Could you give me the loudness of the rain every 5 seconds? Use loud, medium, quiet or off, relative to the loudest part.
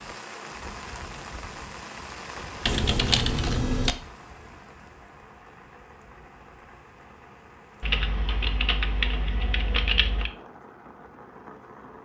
loud, medium, medium.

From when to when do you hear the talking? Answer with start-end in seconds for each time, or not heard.
not heard.